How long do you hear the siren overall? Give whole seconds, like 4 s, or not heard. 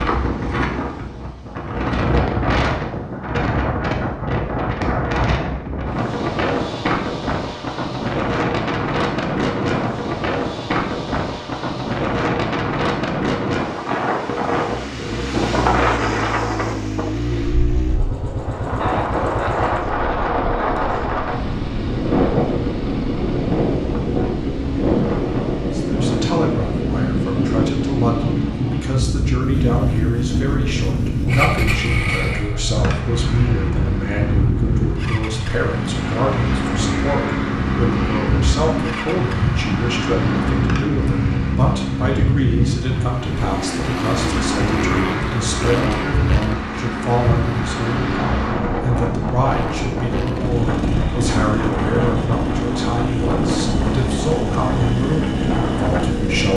not heard.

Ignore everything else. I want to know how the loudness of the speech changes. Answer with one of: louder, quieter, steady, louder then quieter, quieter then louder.
steady.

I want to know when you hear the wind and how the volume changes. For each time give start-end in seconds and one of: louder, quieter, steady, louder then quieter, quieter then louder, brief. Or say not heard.
0.0-56.5 steady.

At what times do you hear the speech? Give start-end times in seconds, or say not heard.
25.6-56.5.